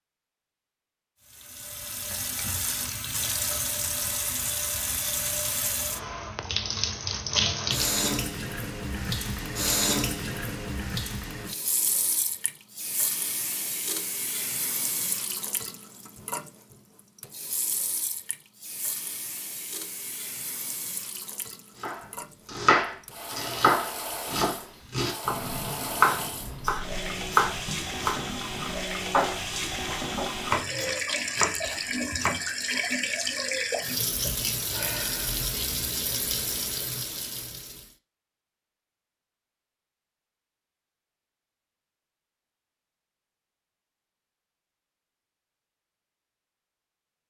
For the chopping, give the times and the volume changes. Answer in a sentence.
The chopping can be heard from 21.8 to 32.5 s, getting quieter.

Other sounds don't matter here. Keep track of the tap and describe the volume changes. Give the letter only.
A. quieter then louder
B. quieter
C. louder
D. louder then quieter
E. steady
A.